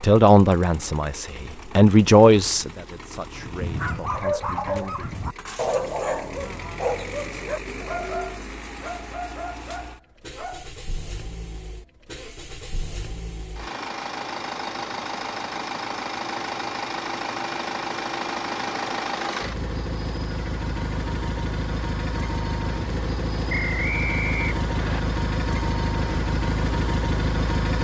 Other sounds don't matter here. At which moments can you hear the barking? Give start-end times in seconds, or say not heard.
3.4-10.7.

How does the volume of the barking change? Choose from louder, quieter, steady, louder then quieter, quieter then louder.
quieter.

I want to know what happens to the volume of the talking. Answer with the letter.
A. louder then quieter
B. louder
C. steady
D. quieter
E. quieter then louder
A.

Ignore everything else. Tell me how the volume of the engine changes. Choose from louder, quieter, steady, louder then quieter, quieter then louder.
louder.